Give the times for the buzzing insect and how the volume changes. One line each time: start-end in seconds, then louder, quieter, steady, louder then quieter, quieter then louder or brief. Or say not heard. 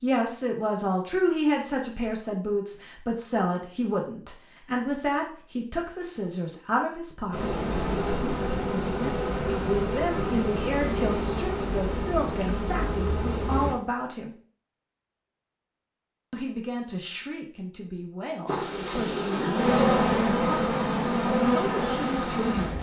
7.3-13.8 steady
18.4-22.7 louder then quieter.